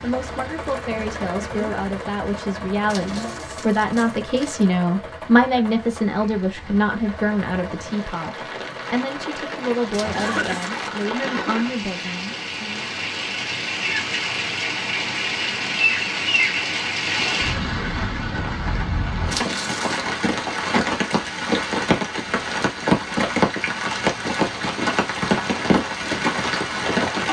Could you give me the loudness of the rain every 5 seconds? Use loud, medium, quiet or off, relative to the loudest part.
quiet, quiet, medium, loud, loud, loud.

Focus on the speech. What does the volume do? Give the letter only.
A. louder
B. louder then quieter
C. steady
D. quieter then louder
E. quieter
B.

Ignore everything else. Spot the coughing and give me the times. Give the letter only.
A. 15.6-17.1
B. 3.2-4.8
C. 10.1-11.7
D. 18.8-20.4
C.